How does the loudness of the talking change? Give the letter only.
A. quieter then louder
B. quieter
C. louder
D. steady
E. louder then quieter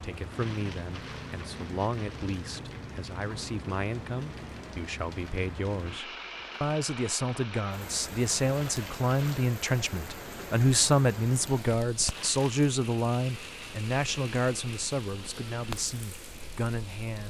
E.